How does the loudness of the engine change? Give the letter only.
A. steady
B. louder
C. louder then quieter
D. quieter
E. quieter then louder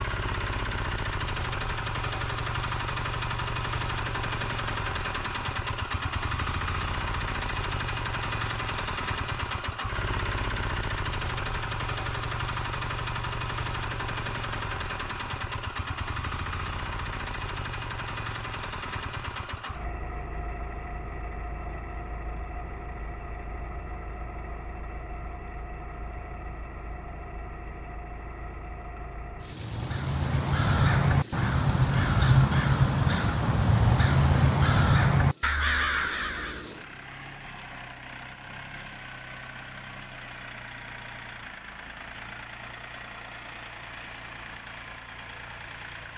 D.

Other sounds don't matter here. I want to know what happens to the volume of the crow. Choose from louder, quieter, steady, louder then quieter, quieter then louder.
steady.